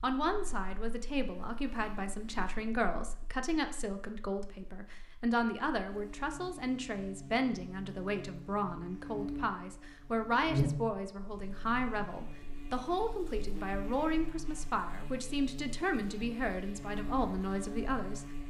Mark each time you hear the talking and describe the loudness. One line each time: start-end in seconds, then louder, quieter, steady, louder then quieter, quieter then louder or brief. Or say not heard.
0.0-18.2 steady.